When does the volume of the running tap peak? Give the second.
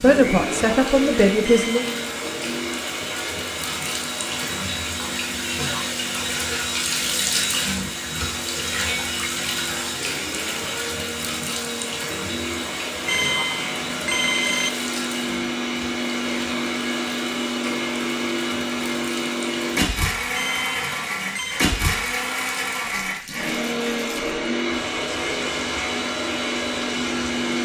7 s.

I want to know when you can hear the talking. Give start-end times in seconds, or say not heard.
0.0-1.9.